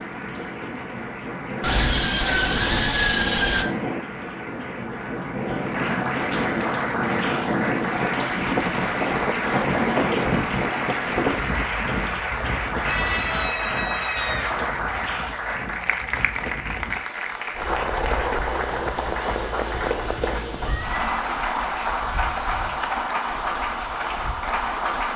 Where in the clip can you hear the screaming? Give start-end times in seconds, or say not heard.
1.6-3.6, 12.8-14.7, 20.6-21.2.